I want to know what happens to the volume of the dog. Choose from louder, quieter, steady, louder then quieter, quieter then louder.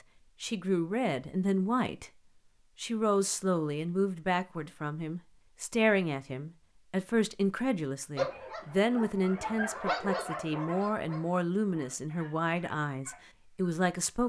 louder then quieter.